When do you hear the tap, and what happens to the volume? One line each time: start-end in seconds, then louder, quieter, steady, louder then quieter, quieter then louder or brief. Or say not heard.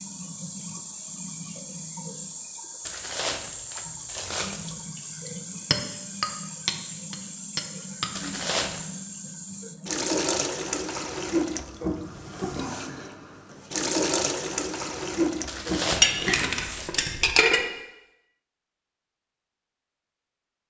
0.0-16.5 louder.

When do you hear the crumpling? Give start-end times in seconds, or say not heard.
2.9-4.8, 8.2-8.8, 15.4-16.9.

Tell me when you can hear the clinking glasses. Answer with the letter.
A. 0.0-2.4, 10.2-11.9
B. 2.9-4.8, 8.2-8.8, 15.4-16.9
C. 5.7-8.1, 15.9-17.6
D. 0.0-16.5
C.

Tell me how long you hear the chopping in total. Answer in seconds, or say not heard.
not heard.